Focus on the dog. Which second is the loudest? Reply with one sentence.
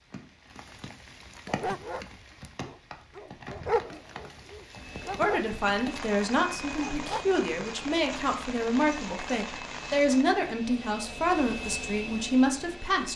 The loudest moment of the dog is at 4 seconds.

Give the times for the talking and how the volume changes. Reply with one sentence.
You can hear the talking from 5.2 to 13.1 s, at a steady volume.